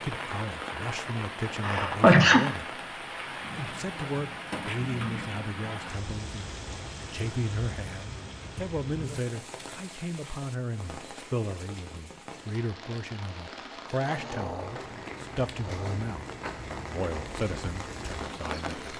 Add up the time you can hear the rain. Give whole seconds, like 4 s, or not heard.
19 s.